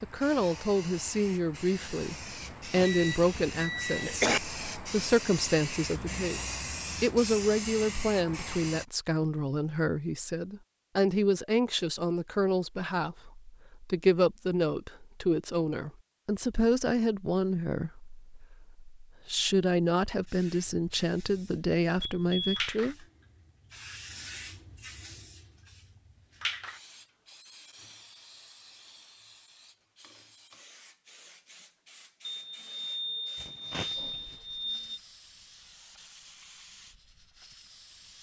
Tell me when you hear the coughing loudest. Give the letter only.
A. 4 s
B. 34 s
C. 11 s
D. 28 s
A.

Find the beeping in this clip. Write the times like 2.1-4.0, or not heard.
2.8-4.2, 22.0-22.6, 32.2-35.0.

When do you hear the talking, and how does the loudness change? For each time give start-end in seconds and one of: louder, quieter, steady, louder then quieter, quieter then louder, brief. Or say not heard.
0.0-22.9 steady.